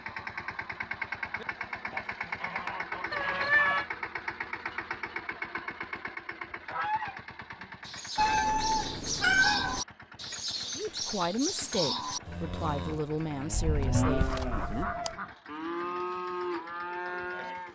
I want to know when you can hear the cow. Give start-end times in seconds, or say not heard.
7.8-17.7.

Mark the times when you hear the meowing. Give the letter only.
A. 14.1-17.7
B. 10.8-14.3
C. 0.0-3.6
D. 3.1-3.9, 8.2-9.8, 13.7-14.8
D.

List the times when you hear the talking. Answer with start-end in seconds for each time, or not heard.
10.8-14.3.